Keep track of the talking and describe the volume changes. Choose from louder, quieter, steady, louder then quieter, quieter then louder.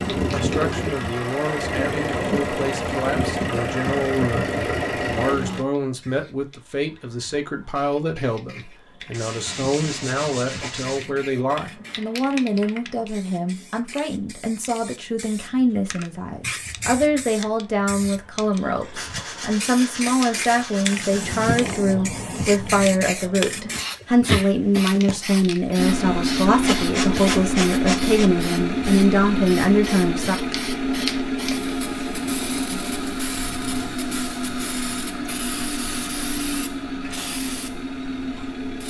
louder.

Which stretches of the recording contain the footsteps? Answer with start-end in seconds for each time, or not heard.
not heard.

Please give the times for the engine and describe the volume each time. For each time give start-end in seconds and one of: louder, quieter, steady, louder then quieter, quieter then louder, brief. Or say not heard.
0.0-5.7 steady
25.8-38.8 quieter.